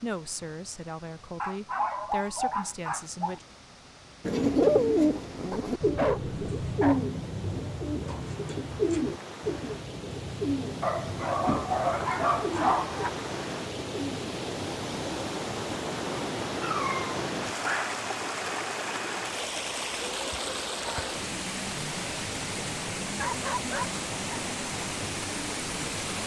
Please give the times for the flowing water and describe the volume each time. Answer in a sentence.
The flowing water can be heard from 0.0 to 26.2 s, getting louder.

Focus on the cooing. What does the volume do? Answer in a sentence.
The loudness of the cooing goes down.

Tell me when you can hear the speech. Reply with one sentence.
You can hear the speech from 0.0 to 3.5 s.